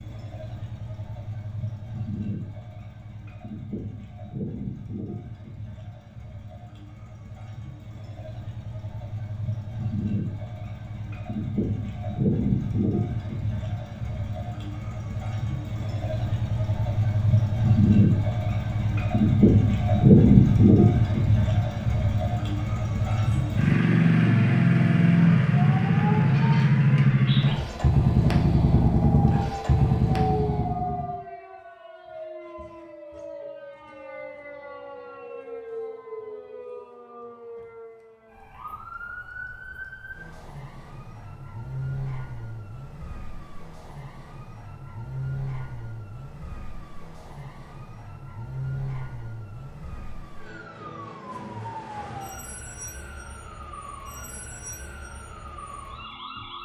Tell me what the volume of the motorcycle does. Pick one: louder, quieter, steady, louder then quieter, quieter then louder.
louder.